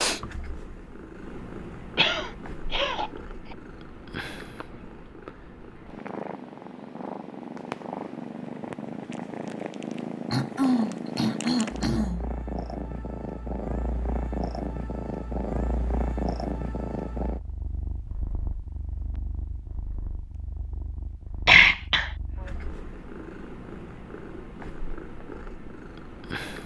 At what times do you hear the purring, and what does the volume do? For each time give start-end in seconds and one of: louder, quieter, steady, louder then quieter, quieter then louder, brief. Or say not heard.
0.0-26.6 louder then quieter.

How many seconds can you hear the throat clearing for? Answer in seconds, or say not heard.
4 s.